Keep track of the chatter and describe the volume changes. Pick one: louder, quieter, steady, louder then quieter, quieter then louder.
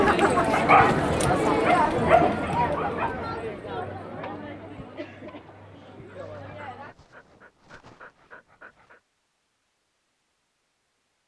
quieter.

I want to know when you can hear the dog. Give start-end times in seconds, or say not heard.
0.5-3.1, 6.0-9.0.